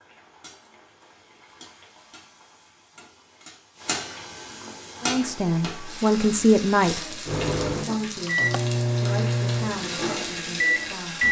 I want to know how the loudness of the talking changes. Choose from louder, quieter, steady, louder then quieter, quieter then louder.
quieter.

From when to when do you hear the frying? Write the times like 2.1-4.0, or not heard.
0.0-11.2.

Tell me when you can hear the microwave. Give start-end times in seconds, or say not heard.
7.2-11.2.